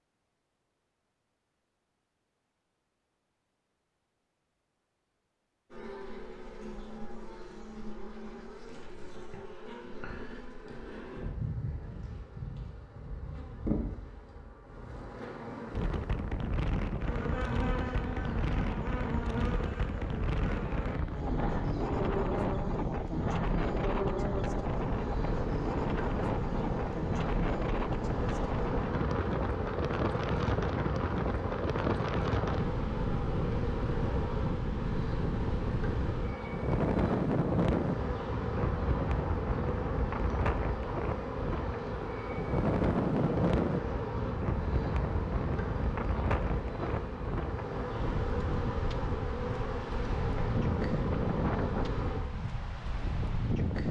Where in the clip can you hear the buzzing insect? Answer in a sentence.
The buzzing insect can be heard from 5.7 to 52.2 s.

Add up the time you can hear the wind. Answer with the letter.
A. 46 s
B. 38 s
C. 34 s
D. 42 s
B.